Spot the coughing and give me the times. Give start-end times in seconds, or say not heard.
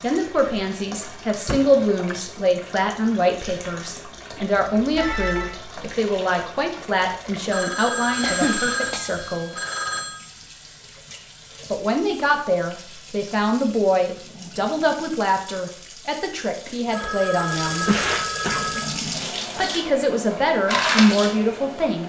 1.4-2.1, 8.2-9.6, 17.9-18.7.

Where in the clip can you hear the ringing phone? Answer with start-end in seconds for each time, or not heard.
4.8-5.5, 7.5-10.2, 16.6-18.9.